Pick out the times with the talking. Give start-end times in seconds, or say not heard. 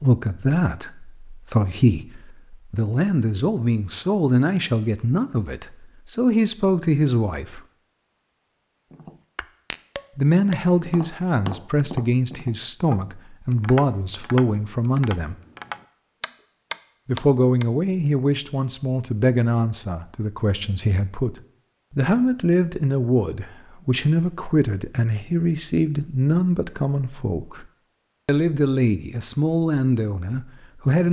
0.0-7.6, 10.2-15.3, 17.1-27.6, 28.2-31.0.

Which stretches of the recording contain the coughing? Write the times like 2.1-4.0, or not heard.
not heard.